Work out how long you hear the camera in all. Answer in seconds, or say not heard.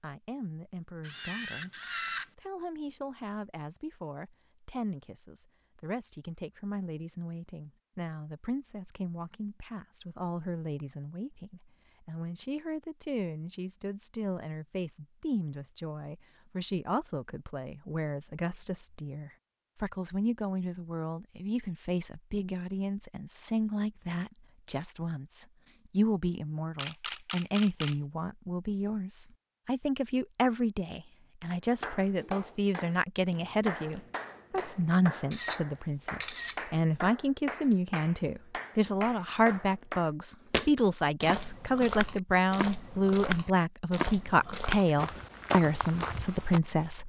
4 s.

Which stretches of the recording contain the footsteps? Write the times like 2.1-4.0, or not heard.
40.5-46.6.